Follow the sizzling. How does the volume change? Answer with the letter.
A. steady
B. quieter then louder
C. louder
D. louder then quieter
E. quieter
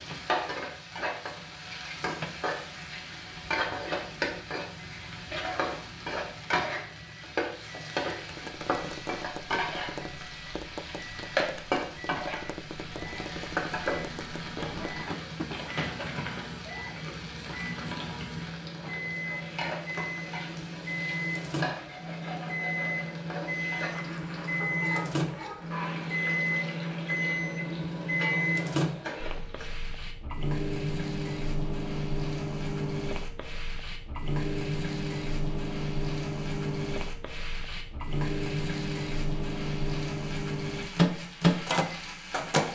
E.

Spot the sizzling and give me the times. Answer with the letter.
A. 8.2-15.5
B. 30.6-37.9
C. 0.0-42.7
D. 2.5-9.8
C.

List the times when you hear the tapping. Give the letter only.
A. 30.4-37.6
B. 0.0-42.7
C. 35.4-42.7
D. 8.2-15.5
D.